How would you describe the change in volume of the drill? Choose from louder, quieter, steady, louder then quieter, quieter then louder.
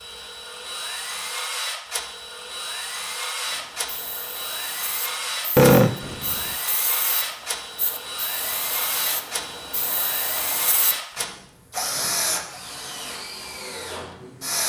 steady.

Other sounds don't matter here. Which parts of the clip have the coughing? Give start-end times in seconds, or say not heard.
5.5-6.5.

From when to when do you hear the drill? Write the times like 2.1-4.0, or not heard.
0.0-14.6.